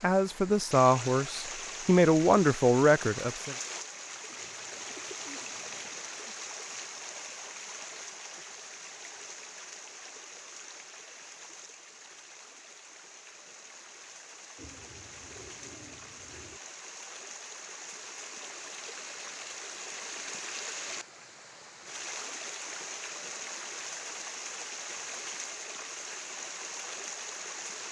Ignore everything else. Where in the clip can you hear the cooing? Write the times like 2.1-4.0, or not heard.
4.3-6.1, 14.6-16.6.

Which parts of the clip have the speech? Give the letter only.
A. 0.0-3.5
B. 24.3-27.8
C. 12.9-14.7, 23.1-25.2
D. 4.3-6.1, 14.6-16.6
A.